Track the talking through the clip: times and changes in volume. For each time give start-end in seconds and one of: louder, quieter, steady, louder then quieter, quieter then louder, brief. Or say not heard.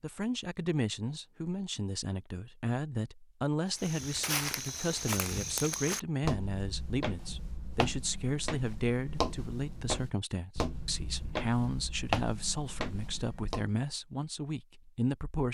0.0-15.4 steady.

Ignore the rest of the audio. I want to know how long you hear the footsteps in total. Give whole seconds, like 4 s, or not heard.
10 s.